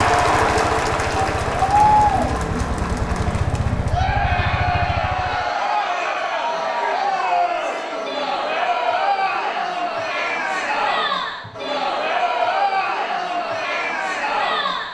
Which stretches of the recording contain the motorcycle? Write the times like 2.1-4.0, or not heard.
0.0-5.5.